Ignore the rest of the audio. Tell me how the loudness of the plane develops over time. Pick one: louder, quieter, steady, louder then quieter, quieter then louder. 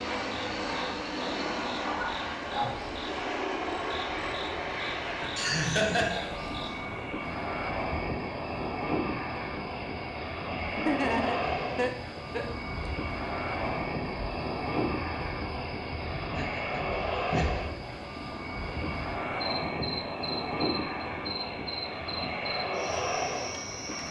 steady.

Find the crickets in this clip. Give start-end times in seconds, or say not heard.
0.2-24.0.